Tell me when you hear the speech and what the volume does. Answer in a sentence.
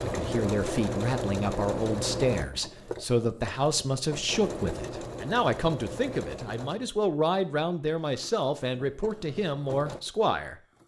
You can hear the speech from 0.0 to 10.6 s, at a steady volume.